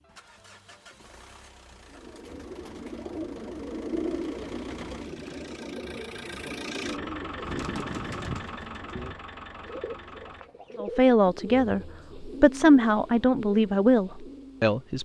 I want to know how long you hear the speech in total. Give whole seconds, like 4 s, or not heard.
4 s.